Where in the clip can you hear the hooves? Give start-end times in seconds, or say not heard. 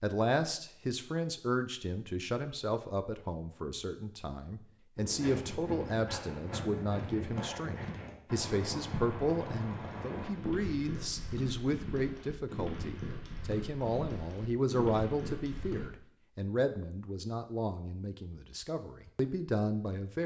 5.0-15.9.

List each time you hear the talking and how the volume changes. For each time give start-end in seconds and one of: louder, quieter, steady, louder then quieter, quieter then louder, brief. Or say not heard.
0.0-20.2 steady.